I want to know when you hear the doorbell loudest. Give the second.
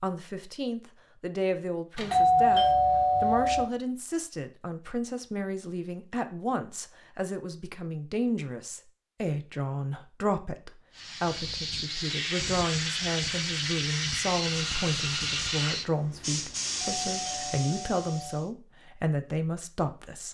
2 s.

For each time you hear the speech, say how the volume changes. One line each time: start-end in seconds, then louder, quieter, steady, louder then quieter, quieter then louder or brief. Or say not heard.
0.0-20.2 steady.